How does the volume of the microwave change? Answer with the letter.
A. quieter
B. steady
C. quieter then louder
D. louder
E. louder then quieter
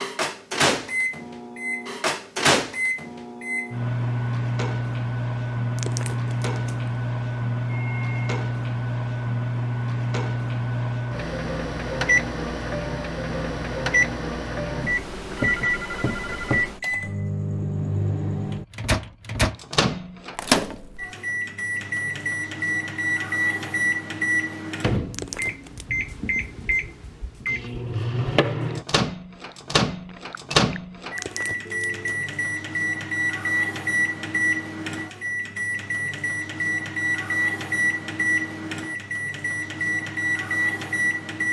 B.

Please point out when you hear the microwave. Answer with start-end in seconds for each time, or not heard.
0.0-41.4.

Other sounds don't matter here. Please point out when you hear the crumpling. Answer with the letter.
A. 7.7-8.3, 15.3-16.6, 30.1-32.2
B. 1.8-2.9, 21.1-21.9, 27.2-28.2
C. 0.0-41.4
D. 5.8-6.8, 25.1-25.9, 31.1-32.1
D.